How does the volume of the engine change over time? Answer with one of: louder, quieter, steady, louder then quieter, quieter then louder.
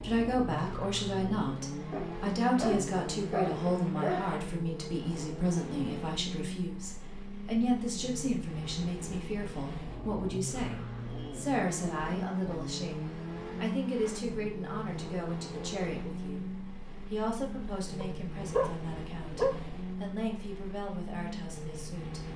steady.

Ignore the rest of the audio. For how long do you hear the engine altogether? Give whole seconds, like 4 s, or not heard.
22 s.